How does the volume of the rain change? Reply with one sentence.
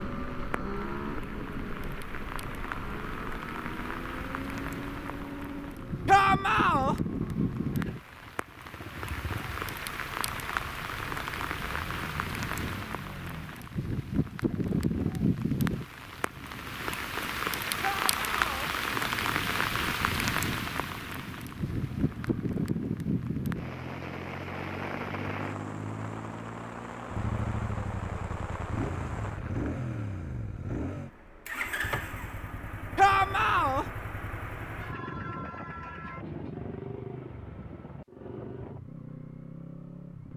The volume of the rain goes up, then down.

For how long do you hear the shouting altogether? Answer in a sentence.
The shouting can be heard for 3 seconds in total.